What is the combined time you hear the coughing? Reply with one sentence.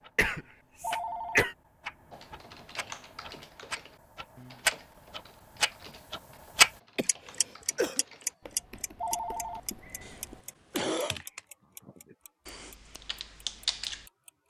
You can hear the coughing for 4 seconds altogether.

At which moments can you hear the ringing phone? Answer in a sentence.
You can hear the ringing phone from 0.8 to 1.4 s and from 8.9 to 9.6 s.